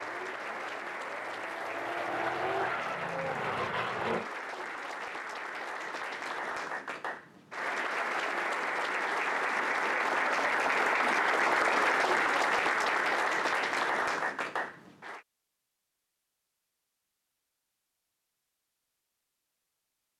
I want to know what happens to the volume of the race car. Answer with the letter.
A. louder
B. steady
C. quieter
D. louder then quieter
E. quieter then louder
A.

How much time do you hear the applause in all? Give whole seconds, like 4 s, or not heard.
15 s.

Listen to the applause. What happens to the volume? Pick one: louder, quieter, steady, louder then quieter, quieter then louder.
louder.